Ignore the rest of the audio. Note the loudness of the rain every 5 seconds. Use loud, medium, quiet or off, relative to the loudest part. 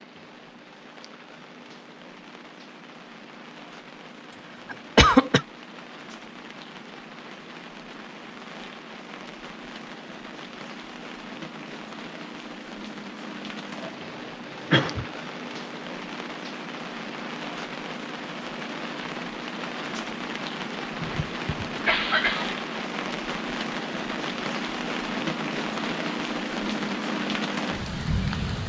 quiet, quiet, medium, medium, loud, loud.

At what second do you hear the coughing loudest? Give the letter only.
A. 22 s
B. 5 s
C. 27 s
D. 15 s
B.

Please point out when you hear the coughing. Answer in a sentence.
The coughing can be heard from 4.7 to 5.5 s, from 13.8 to 15.1 s and from 20.9 to 22.6 s.